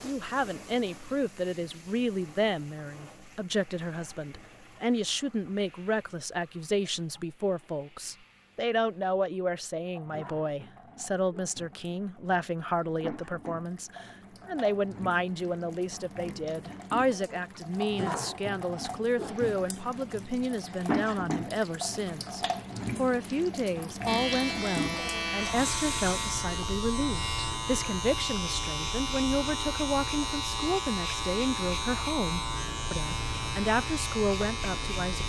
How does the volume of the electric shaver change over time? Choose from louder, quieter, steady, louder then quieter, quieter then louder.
steady.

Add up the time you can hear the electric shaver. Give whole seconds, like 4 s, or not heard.
11 s.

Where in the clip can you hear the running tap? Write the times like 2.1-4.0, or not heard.
0.0-26.4.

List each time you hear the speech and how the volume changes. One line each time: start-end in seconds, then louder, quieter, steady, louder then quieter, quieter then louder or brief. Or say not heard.
0.0-35.2 steady.